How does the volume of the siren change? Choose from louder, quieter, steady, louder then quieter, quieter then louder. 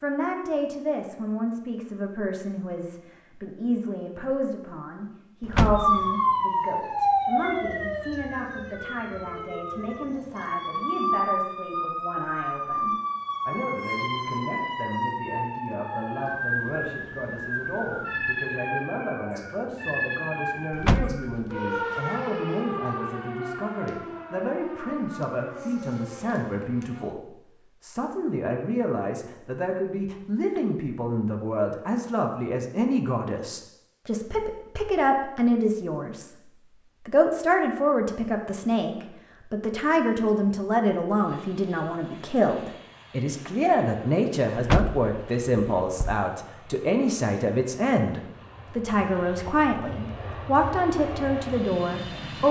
quieter.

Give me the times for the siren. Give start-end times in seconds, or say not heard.
5.8-27.1.